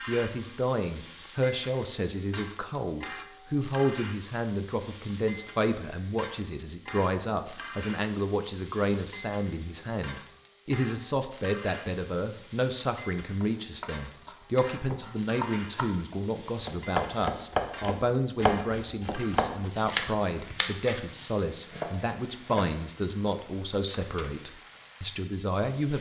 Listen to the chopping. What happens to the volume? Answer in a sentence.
The volume of the chopping goes up, then down.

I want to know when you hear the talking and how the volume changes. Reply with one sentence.
You can hear the talking from 0.1 to 25.9 s, at a steady volume.